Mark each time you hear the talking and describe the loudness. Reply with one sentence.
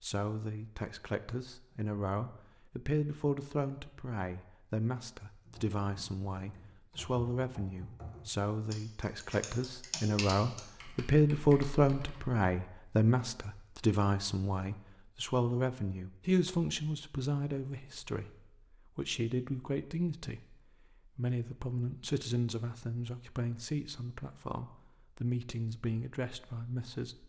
The talking can be heard from 0.0 to 27.2 s, getting louder then quieter.